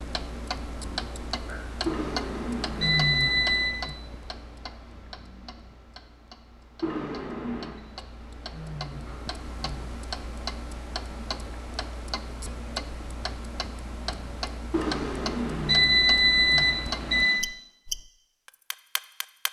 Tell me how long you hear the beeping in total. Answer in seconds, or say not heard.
6 s.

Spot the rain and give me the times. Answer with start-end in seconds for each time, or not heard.
not heard.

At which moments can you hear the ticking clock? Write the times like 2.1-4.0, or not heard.
0.0-19.4.